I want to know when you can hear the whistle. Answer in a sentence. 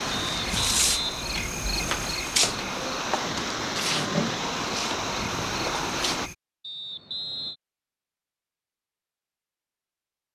The whistle can be heard from 0.1 to 2.1 s and from 6.6 to 7.5 s.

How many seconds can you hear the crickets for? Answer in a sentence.
The crickets can be heard for 6 seconds in total.